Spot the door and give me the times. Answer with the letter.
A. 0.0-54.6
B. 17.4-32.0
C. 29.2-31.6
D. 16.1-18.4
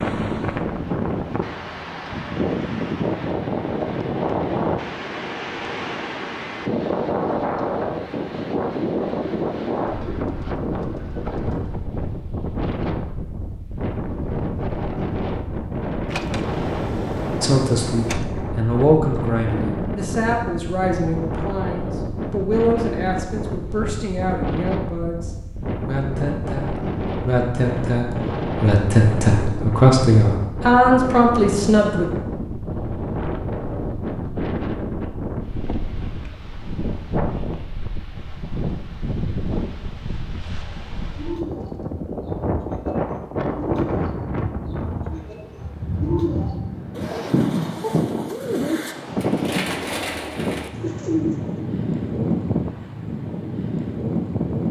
D.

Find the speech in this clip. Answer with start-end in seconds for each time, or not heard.
17.4-32.0.